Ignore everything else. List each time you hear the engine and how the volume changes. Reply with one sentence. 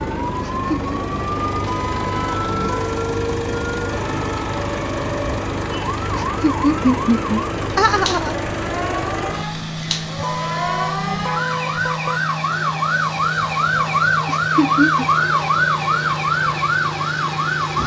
The engine can be heard from 0.0 to 17.8 s, at a steady volume.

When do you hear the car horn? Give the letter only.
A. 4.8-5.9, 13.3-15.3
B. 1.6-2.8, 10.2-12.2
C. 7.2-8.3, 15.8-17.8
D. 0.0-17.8
B.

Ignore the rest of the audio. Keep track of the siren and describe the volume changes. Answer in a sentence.
The volume of the siren goes up.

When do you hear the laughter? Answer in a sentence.
You can hear the laughter from 0.4 to 0.9 s, from 6.2 to 8.3 s and from 14.2 to 15.1 s.